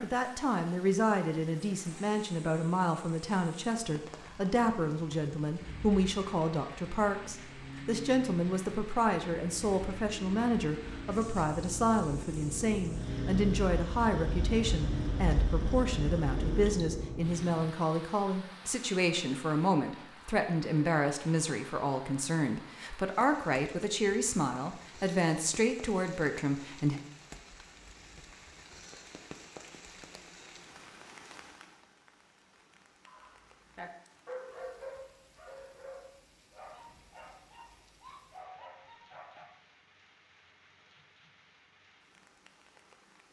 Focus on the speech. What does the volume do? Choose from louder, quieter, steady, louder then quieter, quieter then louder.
steady.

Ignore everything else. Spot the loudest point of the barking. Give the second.
34 s.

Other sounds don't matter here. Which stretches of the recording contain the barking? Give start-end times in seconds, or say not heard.
33.0-39.5.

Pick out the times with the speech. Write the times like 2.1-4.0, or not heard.
0.0-27.0.